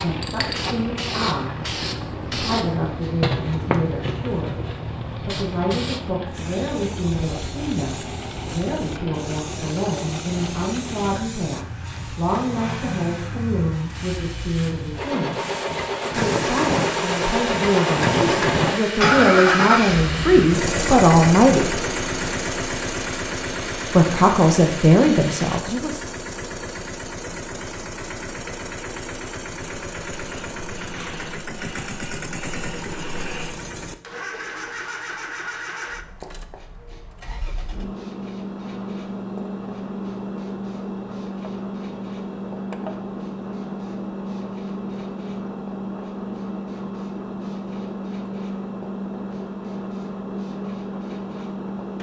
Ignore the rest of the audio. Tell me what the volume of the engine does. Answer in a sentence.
The loudness of the engine goes up, then down.